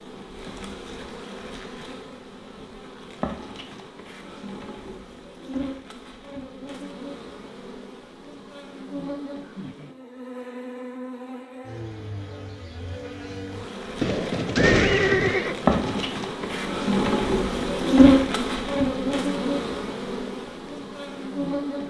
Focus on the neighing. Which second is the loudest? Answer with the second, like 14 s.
15 s.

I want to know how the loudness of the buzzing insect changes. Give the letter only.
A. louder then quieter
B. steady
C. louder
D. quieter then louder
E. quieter
C.